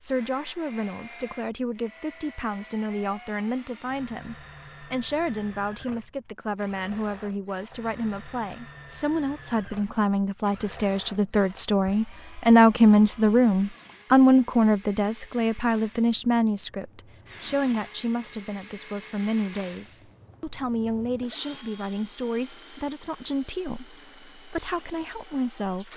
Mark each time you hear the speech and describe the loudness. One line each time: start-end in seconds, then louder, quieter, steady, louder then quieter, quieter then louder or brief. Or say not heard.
0.0-25.9 louder then quieter.